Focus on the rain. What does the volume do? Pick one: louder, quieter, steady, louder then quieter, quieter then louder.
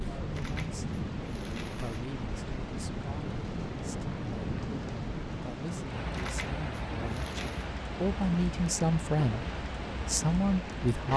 steady.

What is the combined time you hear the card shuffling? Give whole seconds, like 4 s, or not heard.
3 s.